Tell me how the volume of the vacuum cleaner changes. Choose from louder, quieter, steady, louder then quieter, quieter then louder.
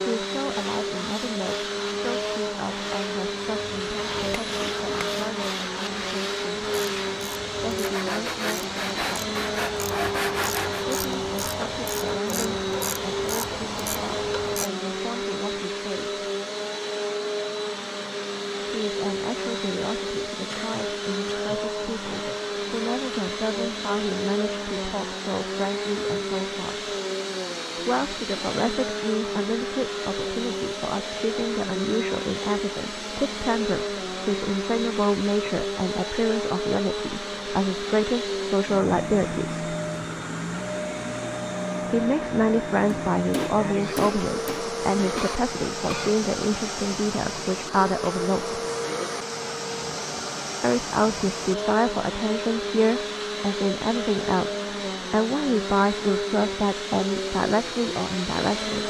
steady.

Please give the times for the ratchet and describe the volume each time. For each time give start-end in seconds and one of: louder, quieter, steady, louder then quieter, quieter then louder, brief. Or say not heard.
6.6-14.7 louder.